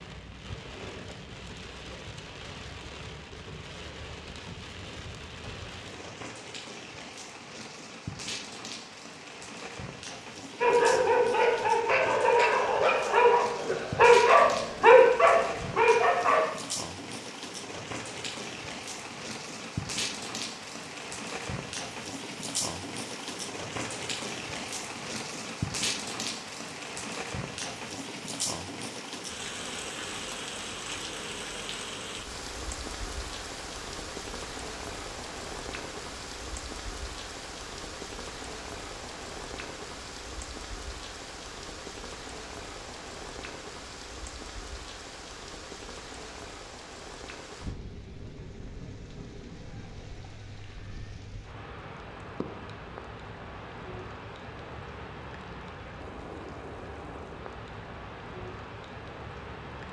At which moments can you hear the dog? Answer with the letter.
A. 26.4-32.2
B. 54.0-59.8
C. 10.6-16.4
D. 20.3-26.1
C.